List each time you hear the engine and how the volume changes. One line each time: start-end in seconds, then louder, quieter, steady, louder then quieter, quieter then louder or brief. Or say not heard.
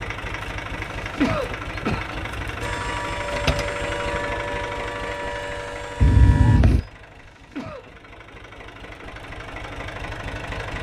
0.0-10.7 quieter then louder.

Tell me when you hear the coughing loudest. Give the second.
1 s.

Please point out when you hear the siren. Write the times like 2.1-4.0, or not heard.
2.6-6.6.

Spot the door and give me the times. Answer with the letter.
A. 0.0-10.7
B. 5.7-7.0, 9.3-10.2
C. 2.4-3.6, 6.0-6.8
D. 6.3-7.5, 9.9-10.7
C.